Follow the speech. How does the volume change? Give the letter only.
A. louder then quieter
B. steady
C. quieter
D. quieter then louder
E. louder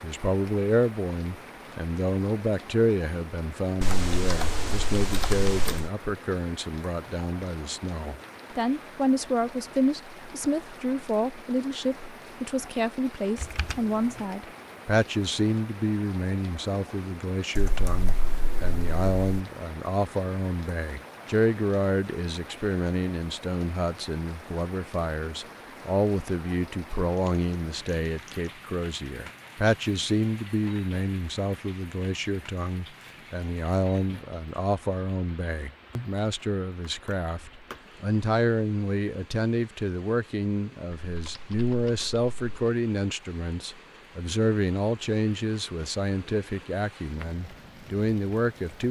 B.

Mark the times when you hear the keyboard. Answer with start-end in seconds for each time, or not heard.
3.8-5.9, 13.3-14.2, 17.6-19.4, 27.1-28.5, 36.8-37.8, 41.0-42.7.